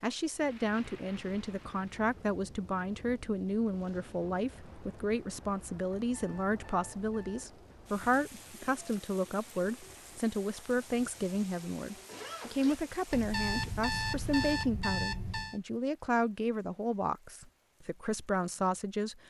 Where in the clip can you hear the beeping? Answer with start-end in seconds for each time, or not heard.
6.0-7.5, 13.1-15.6.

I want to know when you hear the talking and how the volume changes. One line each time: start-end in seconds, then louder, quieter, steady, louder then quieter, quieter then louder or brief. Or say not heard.
0.0-19.2 steady.